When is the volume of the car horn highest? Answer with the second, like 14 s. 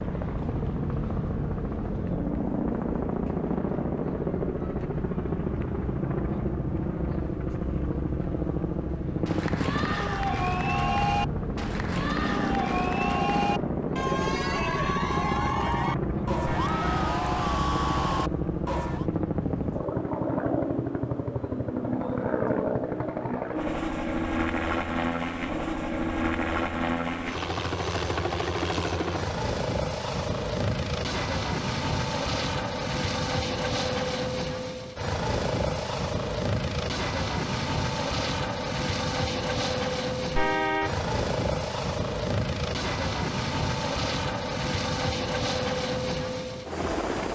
41 s.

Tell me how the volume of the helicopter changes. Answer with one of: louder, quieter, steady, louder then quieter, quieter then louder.
steady.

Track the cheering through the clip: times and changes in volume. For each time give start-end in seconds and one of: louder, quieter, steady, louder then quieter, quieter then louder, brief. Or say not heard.
9.2-19.1 steady.